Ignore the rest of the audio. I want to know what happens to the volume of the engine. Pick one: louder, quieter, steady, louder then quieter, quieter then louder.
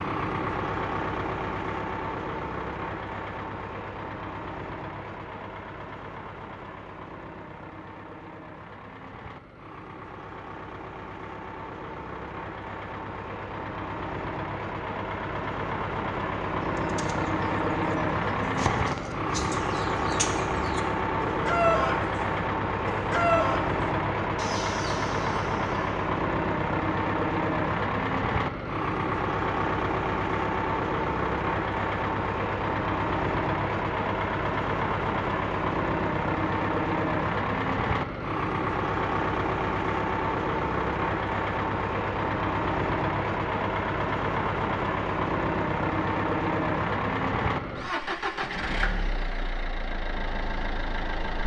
louder.